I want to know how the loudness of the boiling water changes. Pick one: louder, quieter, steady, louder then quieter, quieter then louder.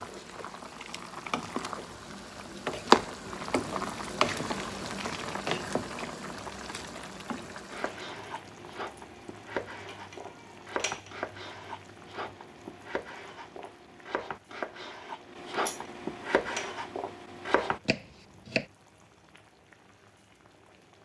quieter.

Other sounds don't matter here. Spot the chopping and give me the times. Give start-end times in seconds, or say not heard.
7.7-18.6.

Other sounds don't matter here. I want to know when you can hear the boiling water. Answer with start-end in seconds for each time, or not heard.
0.0-20.9.